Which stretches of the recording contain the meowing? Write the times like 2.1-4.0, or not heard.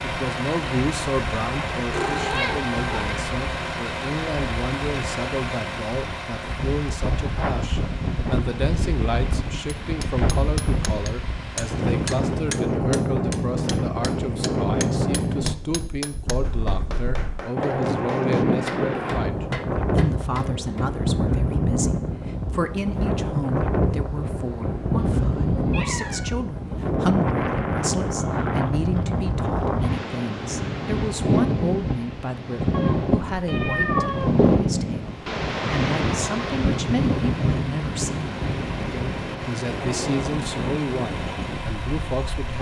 1.9-3.1, 24.9-26.4, 32.7-34.4.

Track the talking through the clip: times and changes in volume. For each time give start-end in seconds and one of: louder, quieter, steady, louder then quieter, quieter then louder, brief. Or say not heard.
0.0-42.5 steady.